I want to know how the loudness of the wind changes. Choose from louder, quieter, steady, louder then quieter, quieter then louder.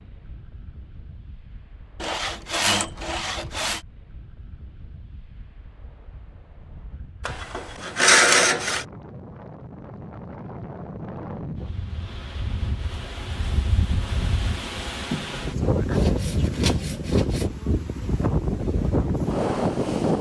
louder.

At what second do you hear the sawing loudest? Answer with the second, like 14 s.
8 s.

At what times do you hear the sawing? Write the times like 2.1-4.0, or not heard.
2.0-3.8, 7.2-8.8, 15.1-17.5.